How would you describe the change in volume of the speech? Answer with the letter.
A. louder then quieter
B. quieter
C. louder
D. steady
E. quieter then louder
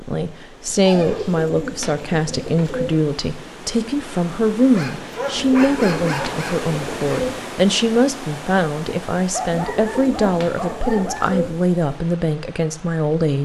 D.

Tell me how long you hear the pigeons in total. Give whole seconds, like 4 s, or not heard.
6 s.